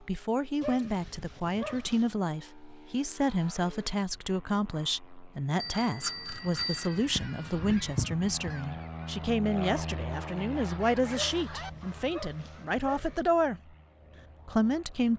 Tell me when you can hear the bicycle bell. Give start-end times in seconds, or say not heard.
5.5-7.0.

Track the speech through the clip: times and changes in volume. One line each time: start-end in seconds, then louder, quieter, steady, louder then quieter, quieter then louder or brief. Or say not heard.
0.0-13.6 steady
14.4-15.1 brief.